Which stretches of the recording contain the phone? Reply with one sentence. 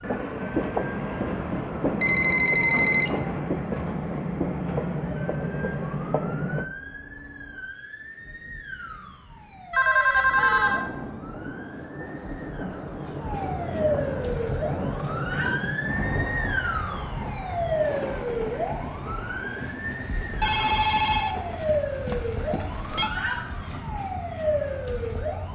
You can hear the phone from 2.0 to 3.1 s, from 9.7 to 10.9 s and from 20.4 to 23.1 s.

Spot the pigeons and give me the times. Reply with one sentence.
You can't hear the pigeons here.